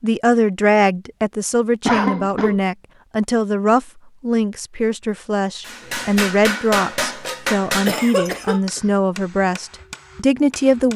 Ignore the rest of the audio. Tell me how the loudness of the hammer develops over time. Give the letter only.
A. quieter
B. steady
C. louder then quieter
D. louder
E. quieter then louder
A.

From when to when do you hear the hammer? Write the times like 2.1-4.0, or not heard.
5.7-10.9.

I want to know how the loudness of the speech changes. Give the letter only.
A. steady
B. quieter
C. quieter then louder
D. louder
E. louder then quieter
A.